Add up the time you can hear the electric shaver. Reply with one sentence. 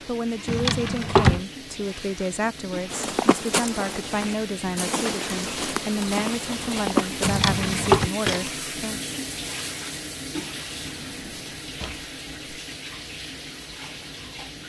The electric shaver can't be heard in this clip.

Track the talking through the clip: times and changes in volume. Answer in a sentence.
You can hear the talking from 0.1 to 9.0 s, at a steady volume.